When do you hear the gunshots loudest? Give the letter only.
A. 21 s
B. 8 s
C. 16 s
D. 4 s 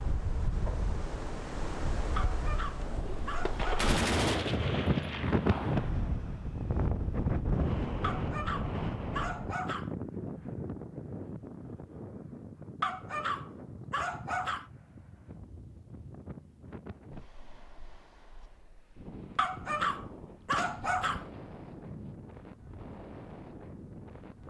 D.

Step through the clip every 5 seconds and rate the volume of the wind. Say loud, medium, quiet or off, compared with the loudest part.
loud, loud, medium, quiet, quiet.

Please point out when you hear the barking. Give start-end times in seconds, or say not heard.
2.1-3.9, 8.0-9.9, 12.8-14.7, 19.4-21.3.